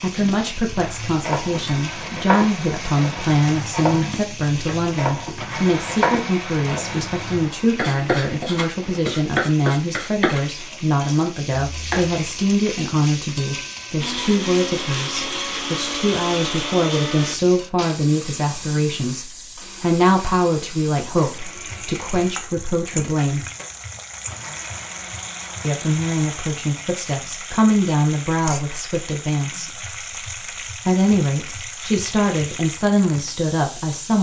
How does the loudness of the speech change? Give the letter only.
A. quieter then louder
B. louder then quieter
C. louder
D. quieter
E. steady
E.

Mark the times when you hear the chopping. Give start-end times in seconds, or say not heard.
0.7-12.3.